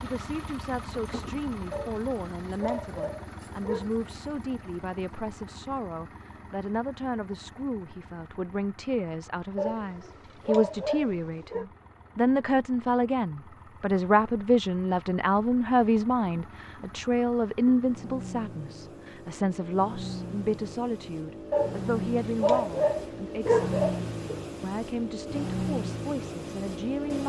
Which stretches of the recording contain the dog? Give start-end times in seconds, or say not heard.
1.7-4.0, 9.6-11.7, 21.5-24.4.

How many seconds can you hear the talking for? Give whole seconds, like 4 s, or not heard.
26 s.